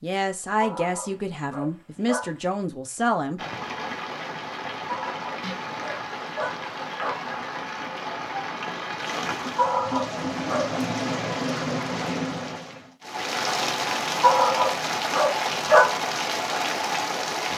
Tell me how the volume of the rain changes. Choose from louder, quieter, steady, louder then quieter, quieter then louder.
louder.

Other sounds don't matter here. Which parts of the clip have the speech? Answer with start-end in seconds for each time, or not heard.
0.0-3.4.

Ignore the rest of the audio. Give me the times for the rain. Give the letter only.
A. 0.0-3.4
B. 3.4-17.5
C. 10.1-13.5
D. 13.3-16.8
B.